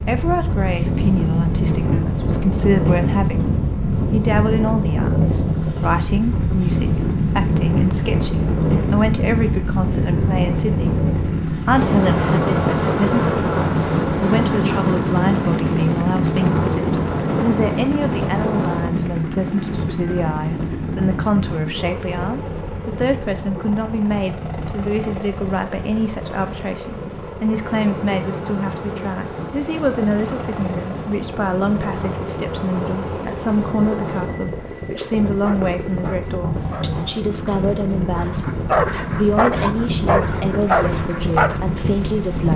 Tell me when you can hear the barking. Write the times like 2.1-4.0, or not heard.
35.0-41.6.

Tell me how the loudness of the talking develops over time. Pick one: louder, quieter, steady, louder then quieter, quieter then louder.
steady.